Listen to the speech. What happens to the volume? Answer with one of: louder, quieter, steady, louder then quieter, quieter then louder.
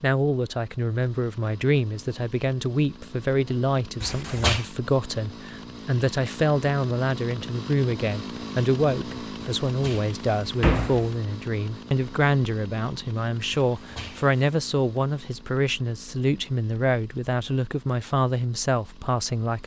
steady.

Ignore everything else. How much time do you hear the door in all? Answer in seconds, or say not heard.
3 s.